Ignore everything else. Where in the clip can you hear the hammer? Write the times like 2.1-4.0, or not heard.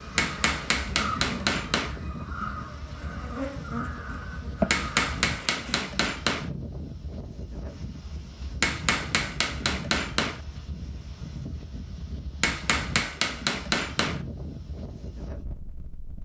0.1-1.9, 4.7-6.5, 8.6-10.4, 12.4-14.2.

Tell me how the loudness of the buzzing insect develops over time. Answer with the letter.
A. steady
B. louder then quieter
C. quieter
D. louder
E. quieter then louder
E.